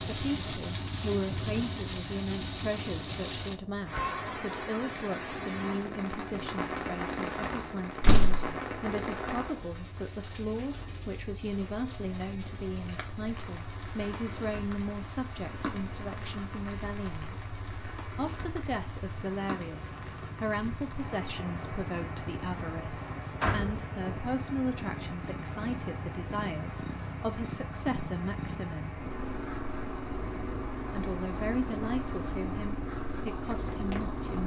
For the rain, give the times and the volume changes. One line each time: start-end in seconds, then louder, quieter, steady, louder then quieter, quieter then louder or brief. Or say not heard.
0.0-34.2 quieter.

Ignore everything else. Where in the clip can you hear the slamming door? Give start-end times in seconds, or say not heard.
8.0-8.4, 22.6-24.2.